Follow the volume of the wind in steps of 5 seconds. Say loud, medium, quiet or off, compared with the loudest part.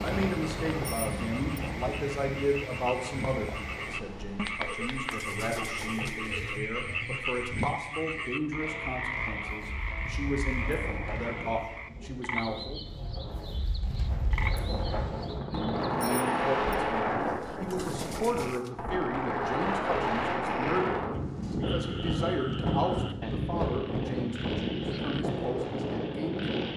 medium, quiet, medium, loud, loud, loud.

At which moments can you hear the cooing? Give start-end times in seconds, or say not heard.
4.6-6.6, 17.2-18.8.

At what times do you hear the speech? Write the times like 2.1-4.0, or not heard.
0.0-12.8, 15.5-26.4.